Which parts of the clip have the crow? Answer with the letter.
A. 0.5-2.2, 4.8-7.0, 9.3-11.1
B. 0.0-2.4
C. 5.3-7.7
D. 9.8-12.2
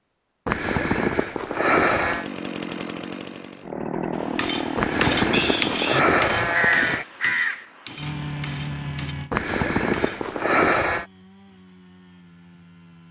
C.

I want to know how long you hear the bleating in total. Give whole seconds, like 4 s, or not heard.
6 s.